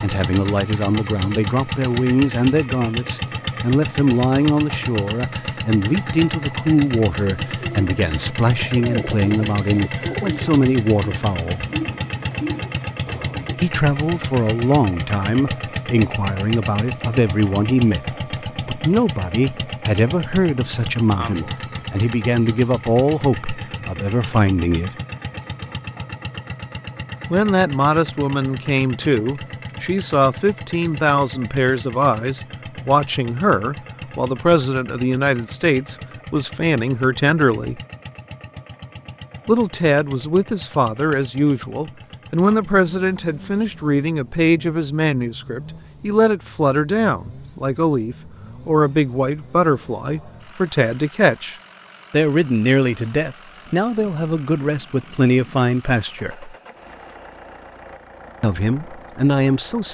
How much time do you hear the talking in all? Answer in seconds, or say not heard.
52 s.